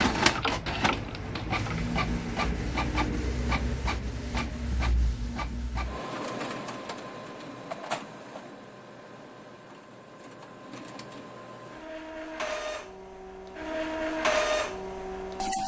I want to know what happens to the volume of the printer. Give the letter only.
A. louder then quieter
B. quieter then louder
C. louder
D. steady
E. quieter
B.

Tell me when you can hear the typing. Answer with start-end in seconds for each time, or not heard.
0.1-1.9.